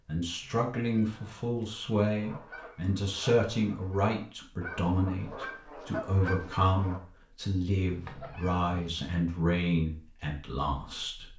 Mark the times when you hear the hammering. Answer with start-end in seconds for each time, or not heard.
not heard.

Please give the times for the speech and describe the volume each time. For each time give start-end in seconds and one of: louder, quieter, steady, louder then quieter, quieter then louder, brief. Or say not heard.
0.1-11.3 steady.